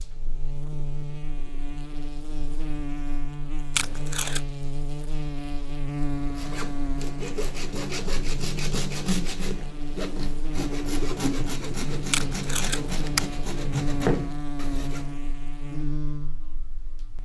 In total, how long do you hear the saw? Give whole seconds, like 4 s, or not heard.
9 s.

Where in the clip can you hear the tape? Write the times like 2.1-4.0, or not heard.
3.8-4.4, 12.1-13.3.